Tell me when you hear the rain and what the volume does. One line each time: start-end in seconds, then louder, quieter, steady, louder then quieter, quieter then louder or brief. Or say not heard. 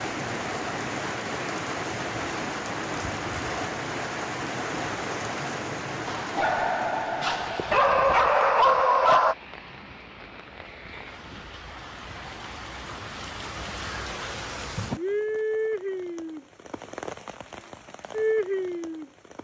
0.0-19.3 quieter then louder.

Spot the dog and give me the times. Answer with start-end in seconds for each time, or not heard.
6.0-9.3.